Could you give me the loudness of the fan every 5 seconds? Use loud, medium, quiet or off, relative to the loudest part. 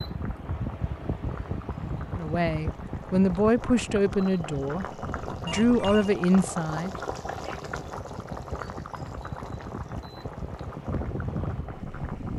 loud, medium, loud.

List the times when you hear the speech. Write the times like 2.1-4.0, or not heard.
2.1-7.0.